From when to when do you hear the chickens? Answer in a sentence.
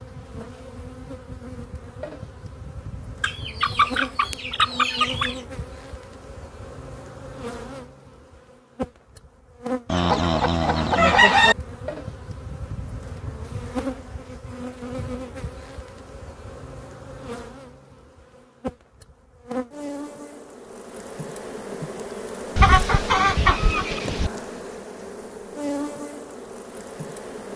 You can hear the chickens from 3.2 to 5.3 s, from 9.9 to 11.6 s and from 22.6 to 24.3 s.